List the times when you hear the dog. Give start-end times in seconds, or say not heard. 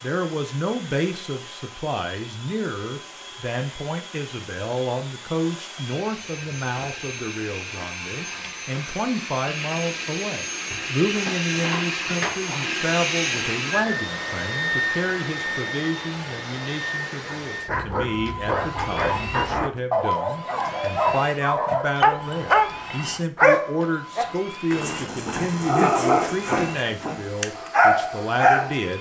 17.2-28.8.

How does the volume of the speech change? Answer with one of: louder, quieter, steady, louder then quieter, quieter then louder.
steady.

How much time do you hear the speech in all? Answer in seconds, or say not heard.
29 s.